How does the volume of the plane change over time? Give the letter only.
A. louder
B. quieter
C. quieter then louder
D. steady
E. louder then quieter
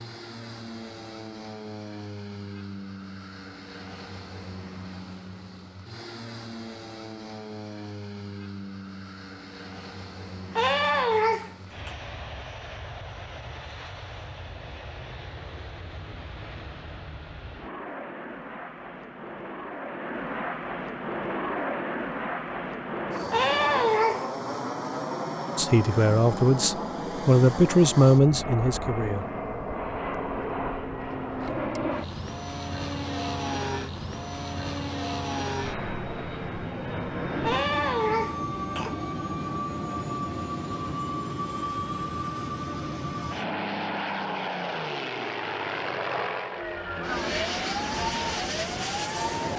A.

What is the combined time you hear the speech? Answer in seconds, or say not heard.
4 s.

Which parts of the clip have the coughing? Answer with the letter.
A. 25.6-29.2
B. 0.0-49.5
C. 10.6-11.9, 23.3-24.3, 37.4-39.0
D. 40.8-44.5
C.